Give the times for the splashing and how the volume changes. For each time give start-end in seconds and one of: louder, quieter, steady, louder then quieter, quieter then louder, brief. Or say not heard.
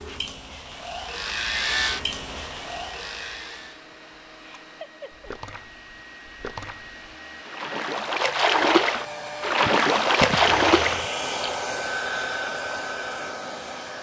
4.4-11.5 louder.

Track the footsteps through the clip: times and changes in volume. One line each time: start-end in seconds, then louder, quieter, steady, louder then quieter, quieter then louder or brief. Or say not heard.
not heard.